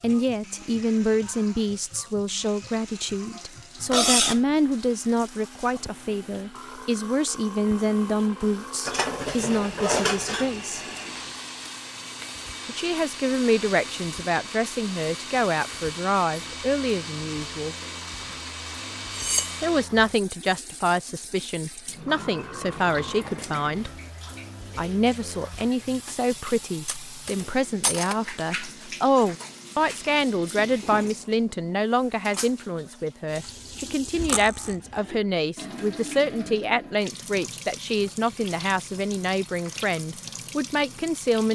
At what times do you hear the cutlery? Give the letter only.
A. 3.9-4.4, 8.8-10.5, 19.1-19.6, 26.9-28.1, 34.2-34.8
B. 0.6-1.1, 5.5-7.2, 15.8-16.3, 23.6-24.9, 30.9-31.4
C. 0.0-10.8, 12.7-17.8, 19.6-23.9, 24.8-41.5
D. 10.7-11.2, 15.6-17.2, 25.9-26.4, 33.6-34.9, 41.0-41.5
A.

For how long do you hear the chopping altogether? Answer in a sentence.
The chopping can't be heard in this clip.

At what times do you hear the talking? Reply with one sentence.
You can hear the talking from 0.0 to 10.8 s, from 12.7 to 17.8 s, from 19.6 to 23.9 s and from 24.8 to 41.5 s.